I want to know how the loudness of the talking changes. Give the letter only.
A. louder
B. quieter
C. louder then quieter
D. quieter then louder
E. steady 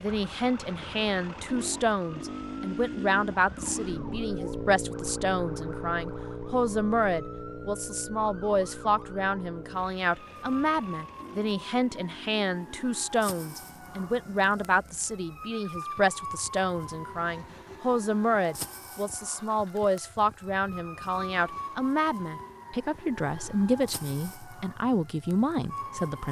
E.